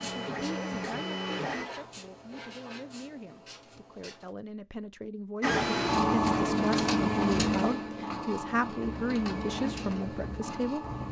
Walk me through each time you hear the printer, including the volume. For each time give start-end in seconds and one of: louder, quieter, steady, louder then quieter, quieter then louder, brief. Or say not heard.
0.0-1.6 brief
5.4-11.0 quieter.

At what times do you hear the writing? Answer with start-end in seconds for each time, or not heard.
0.0-4.3, 8.8-11.0.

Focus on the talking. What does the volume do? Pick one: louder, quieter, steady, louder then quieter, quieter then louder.
louder.